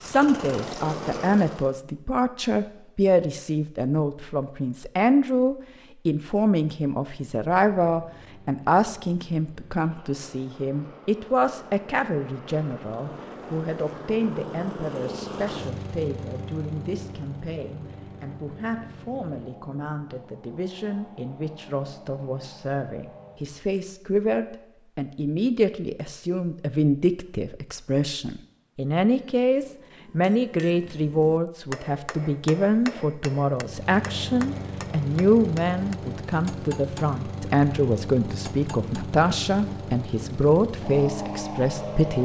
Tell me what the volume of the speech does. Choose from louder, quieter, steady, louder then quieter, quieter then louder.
quieter then louder.